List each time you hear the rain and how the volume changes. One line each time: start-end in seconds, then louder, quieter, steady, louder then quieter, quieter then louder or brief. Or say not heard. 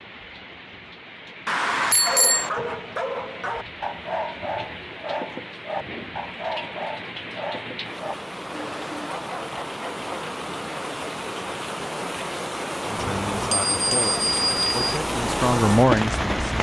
0.0-16.5 louder.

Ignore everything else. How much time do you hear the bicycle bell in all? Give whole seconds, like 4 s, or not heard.
3 s.